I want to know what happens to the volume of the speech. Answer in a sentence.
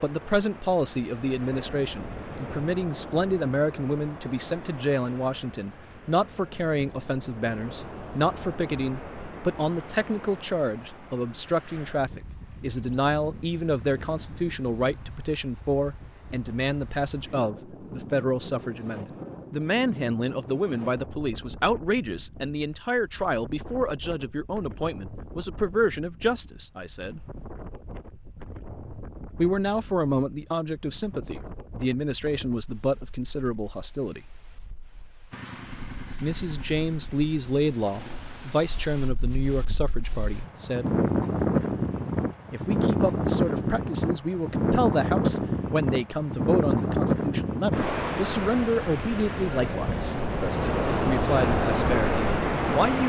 The loudness of the speech stays about the same.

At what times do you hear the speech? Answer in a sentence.
You can hear the speech from 0.0 to 27.2 s, from 29.4 to 34.2 s, from 36.2 to 40.9 s and from 42.5 to 53.0 s.